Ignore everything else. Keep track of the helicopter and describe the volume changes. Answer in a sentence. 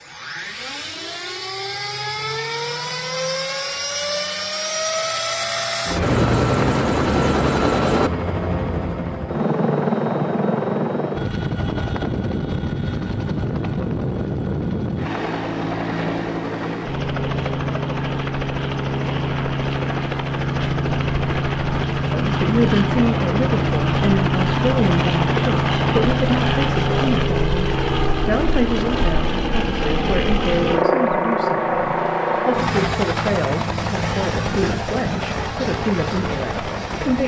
The volume of the helicopter stays about the same.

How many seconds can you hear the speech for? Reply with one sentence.
You can hear the speech for 15 seconds altogether.